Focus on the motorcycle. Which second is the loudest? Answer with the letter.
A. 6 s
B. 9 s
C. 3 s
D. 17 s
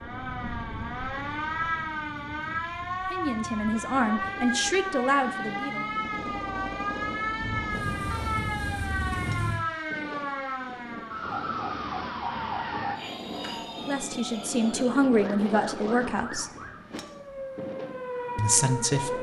B.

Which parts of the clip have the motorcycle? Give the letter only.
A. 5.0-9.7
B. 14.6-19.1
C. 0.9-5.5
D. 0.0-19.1
A.